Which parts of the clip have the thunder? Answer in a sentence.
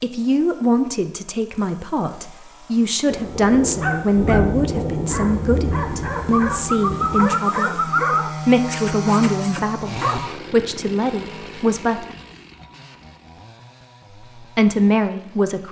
The thunder can be heard from 3.0 to 7.3 s.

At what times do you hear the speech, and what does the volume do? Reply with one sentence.
You can hear the speech from 0.0 to 12.2 s, at a steady volume; and briefly from 14.4 to 15.6 s.